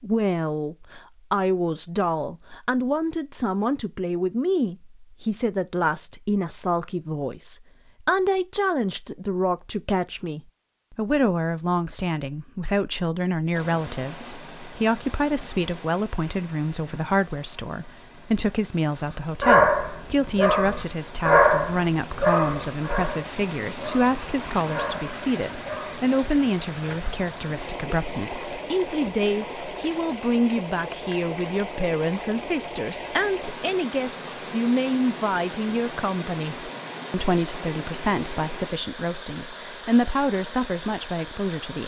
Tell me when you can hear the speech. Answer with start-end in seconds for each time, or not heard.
0.0-41.8.